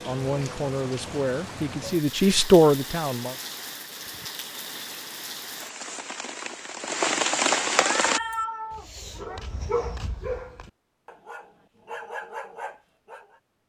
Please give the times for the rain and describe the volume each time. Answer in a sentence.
You can hear the rain from 0.0 to 8.2 s, getting louder.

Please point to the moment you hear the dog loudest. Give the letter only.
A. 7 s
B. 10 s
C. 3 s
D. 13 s
B.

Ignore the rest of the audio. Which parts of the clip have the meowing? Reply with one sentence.
The meowing can be heard from 7.8 to 9.4 s.